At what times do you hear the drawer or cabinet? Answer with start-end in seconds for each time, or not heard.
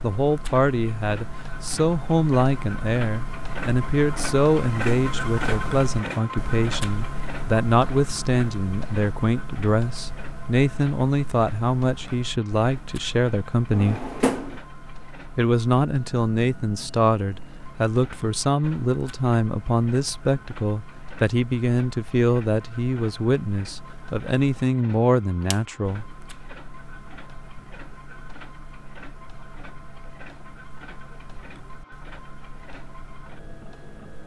13.7-14.6.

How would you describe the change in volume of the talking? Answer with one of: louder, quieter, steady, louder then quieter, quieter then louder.
steady.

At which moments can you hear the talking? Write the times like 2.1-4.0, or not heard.
0.0-14.0, 15.3-26.1.